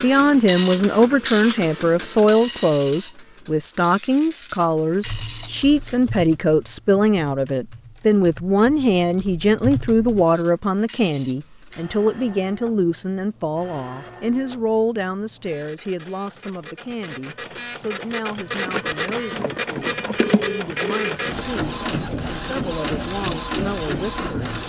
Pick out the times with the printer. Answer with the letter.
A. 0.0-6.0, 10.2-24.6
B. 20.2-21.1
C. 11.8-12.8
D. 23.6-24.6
A.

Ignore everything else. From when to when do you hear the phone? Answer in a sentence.
You can hear the phone from 20.2 to 21.1 s.